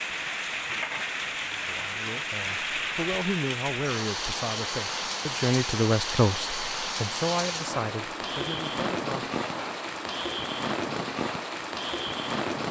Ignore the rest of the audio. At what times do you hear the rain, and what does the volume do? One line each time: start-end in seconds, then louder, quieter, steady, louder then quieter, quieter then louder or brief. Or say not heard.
0.0-12.6 steady.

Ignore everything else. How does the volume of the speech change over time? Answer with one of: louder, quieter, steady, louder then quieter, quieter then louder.
louder then quieter.